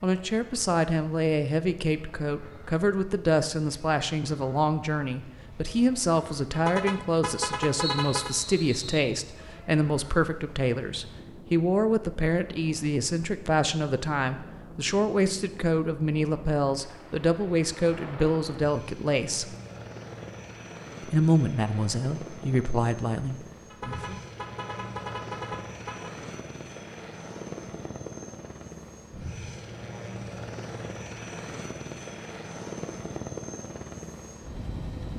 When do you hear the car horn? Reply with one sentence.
You can hear the car horn from 6.5 to 8.3 s and from 23.7 to 26.2 s.